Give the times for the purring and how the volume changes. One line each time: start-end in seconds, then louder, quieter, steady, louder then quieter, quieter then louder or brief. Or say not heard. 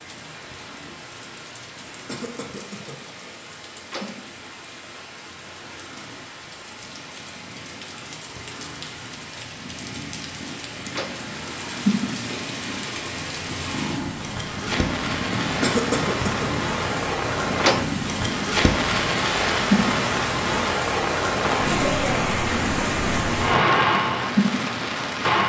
0.0-25.4 louder.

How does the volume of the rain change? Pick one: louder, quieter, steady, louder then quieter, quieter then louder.
louder.